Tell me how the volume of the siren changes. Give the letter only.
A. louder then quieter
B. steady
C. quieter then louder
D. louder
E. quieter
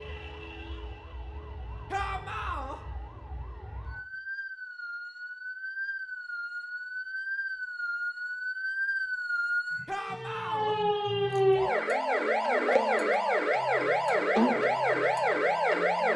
D.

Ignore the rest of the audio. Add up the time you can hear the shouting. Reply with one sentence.
You can hear the shouting for 2 seconds altogether.